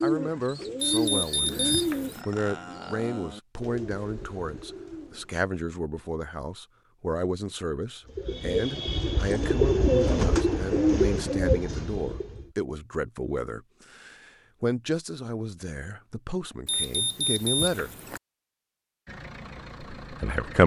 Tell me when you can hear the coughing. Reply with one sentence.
The coughing can't be heard in this clip.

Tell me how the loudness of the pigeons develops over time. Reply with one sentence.
The loudness of the pigeons goes down, then up.